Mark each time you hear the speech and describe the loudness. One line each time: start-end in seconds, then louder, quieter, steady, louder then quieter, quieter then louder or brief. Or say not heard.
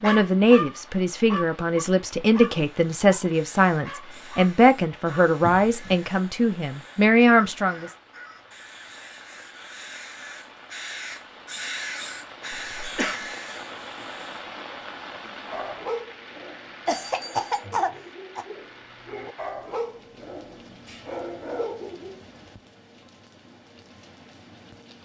0.0-7.9 steady.